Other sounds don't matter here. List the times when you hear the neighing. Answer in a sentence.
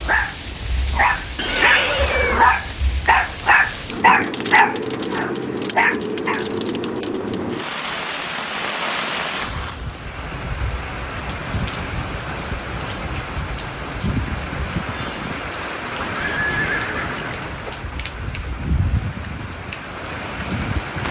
The neighing can be heard from 1.4 to 2.5 s and from 16.1 to 17.8 s.